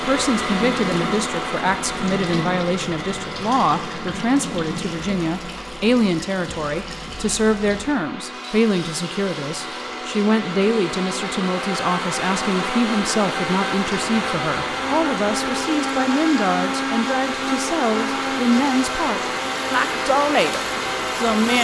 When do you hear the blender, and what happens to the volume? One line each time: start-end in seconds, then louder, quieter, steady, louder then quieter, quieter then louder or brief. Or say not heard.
0.0-21.5 quieter then louder.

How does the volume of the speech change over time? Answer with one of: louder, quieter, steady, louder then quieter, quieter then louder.
steady.